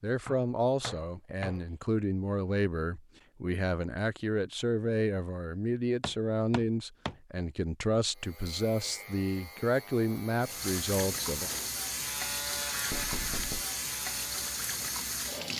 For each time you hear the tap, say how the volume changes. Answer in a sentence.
The tap can be heard from 10.4 to 15.5 s, at a steady volume.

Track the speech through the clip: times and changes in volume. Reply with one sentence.
You can hear the speech from 0.0 to 11.5 s, at a steady volume.